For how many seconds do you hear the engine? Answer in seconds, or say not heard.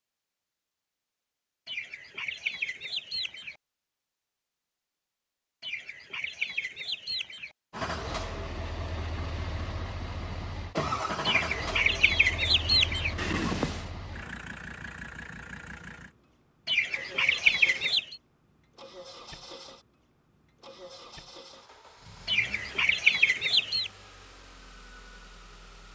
18 s.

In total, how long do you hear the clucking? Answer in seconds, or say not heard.
9 s.